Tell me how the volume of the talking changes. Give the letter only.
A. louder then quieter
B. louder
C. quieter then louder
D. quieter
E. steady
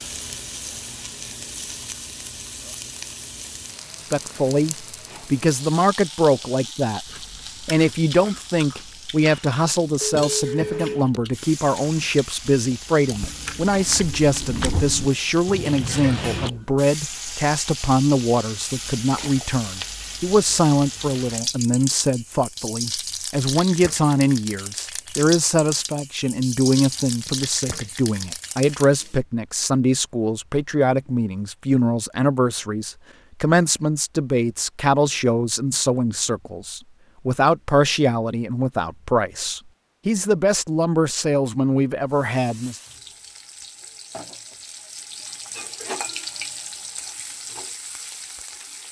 E.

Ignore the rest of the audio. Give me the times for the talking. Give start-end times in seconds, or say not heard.
4.1-42.8.